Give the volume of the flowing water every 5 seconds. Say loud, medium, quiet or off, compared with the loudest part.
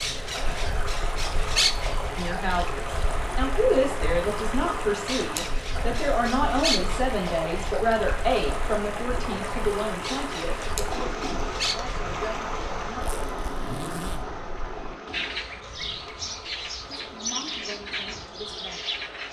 loud, loud, loud, medium.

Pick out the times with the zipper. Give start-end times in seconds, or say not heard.
12.9-14.2.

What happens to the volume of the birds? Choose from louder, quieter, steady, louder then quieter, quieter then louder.
quieter then louder.